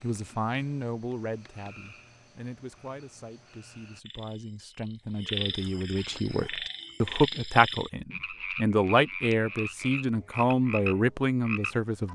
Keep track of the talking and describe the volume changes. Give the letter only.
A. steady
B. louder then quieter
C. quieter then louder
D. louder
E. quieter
C.